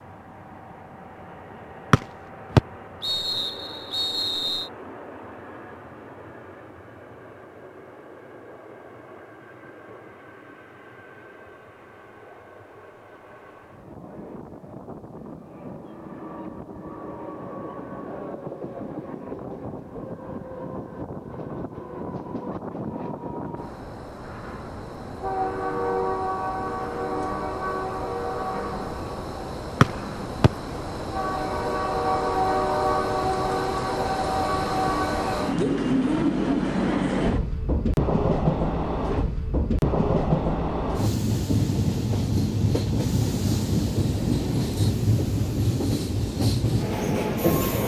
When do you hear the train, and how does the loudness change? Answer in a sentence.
The train can be heard from 0.0 to 47.8 s, getting louder.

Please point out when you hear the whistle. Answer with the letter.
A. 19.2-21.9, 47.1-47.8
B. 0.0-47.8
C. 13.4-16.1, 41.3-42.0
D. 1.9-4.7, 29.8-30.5
D.